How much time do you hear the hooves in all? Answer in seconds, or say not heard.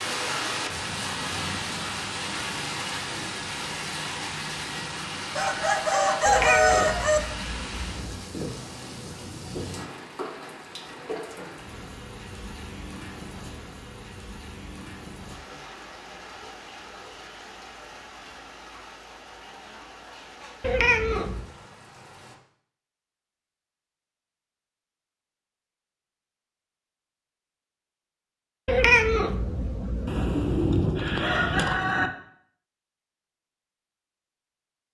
not heard.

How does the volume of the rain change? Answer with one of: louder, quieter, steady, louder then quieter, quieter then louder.
quieter.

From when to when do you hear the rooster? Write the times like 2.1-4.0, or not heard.
5.3-7.2, 30.1-32.1.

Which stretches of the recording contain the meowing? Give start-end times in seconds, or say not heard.
6.2-8.2, 20.6-21.5, 28.6-30.7.